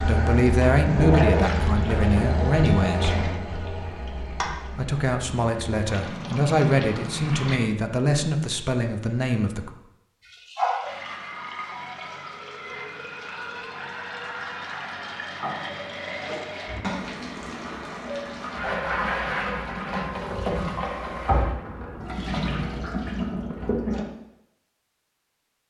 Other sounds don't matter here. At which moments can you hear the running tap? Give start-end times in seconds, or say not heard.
0.0-7.6, 10.2-24.1.